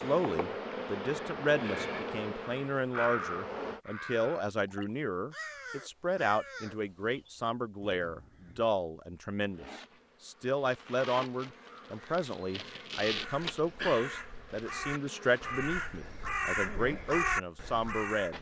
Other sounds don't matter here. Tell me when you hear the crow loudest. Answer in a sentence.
The loudest moment of the crow is at 17 seconds.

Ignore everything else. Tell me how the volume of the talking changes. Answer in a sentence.
The loudness of the talking stays about the same.